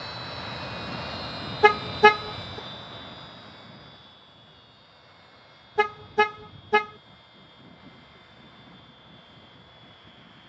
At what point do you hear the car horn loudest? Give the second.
2 s.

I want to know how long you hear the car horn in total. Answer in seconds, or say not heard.
2 s.